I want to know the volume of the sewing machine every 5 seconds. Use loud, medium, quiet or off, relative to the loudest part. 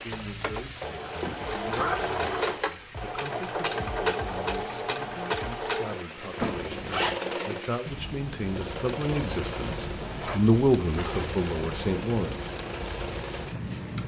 loud, loud, medium.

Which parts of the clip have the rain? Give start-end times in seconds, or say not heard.
0.0-14.0.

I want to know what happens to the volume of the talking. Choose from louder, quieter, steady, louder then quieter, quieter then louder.
louder.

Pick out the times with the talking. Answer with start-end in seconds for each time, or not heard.
0.0-12.4.